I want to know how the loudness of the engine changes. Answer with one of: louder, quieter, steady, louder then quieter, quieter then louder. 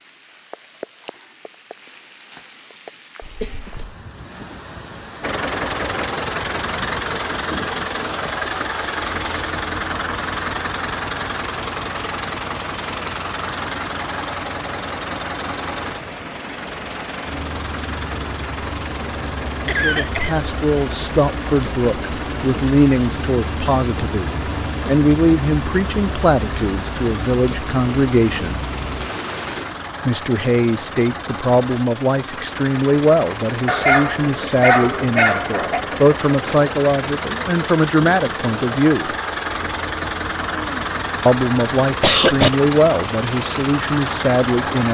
quieter then louder.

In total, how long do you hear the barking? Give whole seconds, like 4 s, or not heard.
2 s.